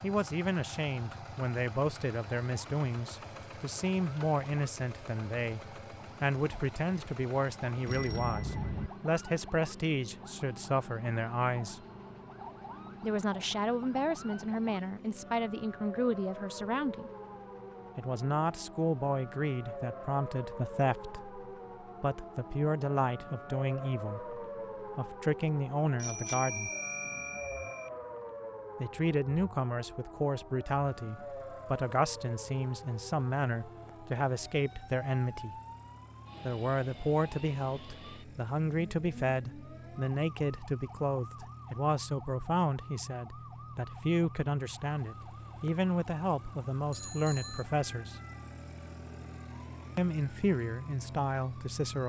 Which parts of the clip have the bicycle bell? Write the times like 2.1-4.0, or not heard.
7.8-8.9, 25.9-27.9, 46.9-47.6.